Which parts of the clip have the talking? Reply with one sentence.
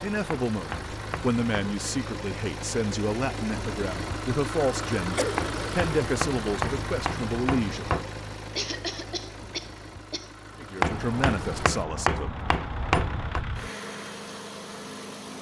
The talking can be heard from 0.0 to 8.0 s and from 10.6 to 12.4 s.